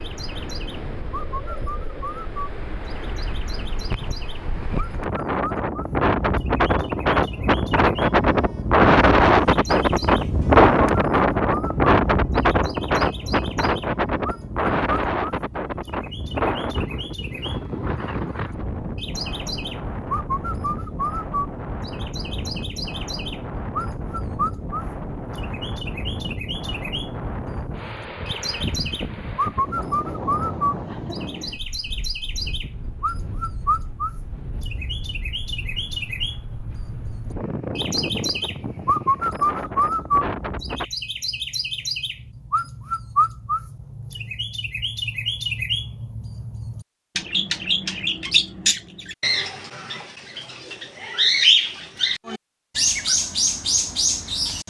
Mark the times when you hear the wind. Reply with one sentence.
You can hear the wind from 0.0 to 40.9 s.